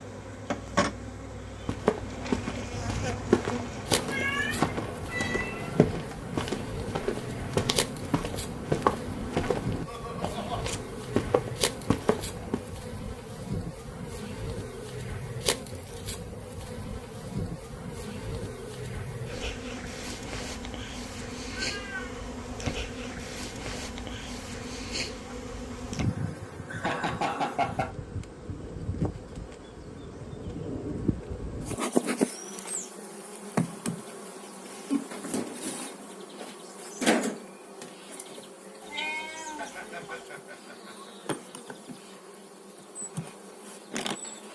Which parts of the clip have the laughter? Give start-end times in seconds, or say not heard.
9.8-10.7, 26.6-27.9, 39.5-41.3.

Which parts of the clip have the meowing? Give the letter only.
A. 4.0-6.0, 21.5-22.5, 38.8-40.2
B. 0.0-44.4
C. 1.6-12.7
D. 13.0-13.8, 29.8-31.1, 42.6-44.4
A.